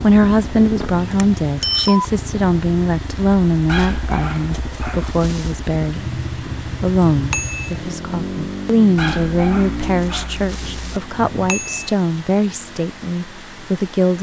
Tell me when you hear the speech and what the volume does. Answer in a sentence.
The speech can be heard from 0.0 to 14.1 s, at a steady volume.